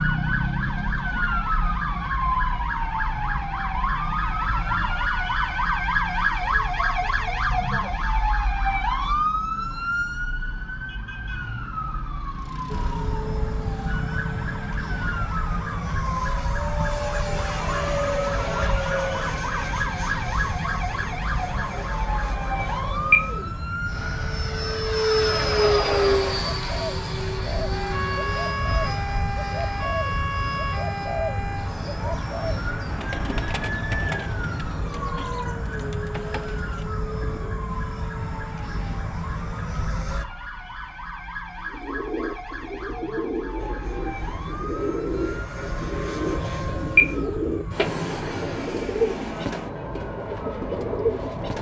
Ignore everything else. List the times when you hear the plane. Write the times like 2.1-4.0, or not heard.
12.7-40.2, 43.5-51.5.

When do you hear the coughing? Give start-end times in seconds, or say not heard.
not heard.